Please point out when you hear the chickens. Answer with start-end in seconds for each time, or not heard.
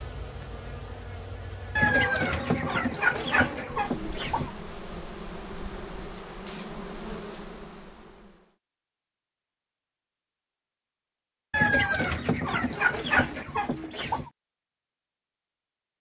1.8-4.5, 11.5-14.3.